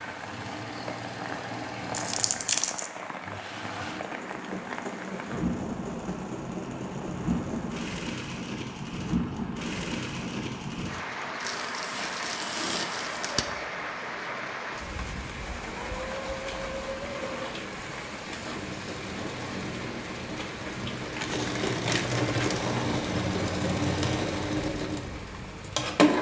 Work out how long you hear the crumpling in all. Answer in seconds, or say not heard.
5 s.